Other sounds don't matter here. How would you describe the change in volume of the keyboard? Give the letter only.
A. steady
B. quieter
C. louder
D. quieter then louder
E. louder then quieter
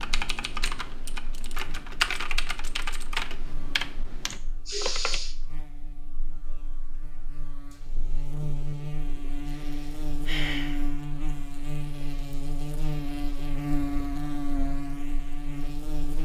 E.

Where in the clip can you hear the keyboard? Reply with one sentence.
The keyboard can be heard from 0.0 to 5.2 s.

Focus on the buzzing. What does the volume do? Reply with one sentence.
The volume of the buzzing goes up.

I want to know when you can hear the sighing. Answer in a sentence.
You can hear the sighing from 4.3 to 5.3 s and from 9.4 to 10.8 s.